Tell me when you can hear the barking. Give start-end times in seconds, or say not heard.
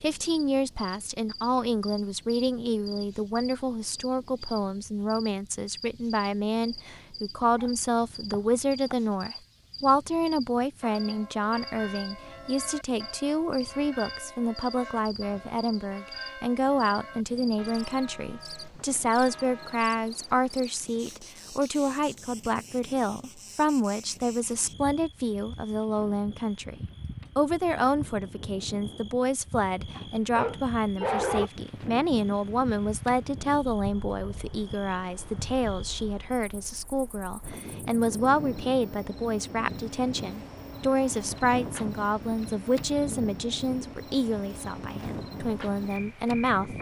7.4-8.9, 29.9-31.5.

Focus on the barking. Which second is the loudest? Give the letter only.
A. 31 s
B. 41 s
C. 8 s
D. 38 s
A.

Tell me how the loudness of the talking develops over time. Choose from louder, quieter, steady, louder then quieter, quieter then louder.
steady.